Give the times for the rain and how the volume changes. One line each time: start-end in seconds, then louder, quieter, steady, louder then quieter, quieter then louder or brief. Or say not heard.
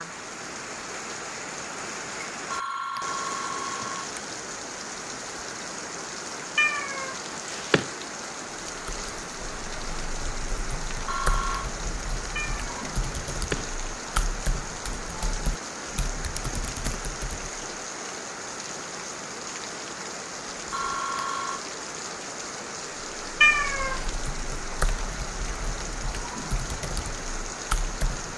0.0-28.3 steady.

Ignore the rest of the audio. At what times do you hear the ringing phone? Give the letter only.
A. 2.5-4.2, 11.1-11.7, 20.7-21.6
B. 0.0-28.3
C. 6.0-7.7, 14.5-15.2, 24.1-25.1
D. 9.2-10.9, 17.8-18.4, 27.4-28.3
A.